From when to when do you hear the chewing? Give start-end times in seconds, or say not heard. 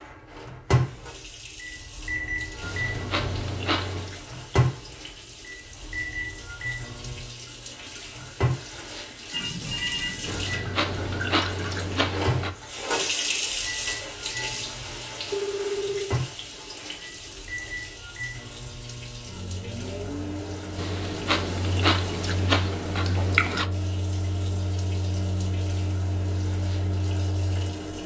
2.6-4.2, 10.2-12.6, 20.8-23.6.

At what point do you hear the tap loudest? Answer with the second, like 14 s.
13 s.